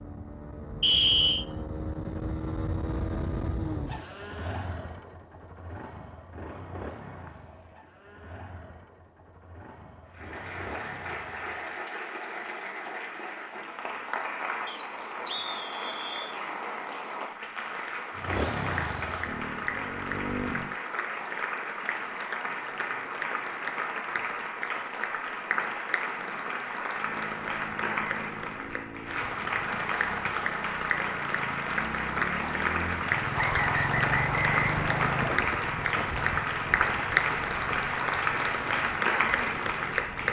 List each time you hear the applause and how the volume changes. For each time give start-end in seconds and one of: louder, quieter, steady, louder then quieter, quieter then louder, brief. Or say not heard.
10.1-40.2 louder.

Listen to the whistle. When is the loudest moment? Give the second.
1 s.